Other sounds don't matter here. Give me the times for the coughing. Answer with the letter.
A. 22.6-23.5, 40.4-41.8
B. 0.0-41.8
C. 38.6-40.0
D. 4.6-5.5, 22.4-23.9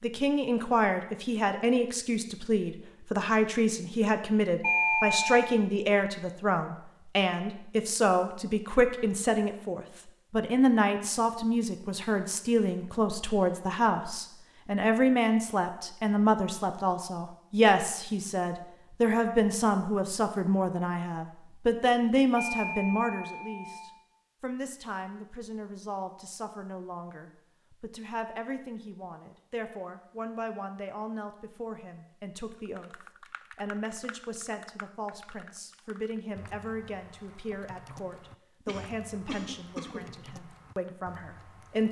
C.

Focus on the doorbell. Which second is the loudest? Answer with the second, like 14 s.
5 s.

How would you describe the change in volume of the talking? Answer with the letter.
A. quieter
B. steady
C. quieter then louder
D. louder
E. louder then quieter
A.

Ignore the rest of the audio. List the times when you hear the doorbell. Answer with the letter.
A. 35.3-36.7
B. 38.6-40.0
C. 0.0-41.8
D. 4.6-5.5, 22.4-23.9
D.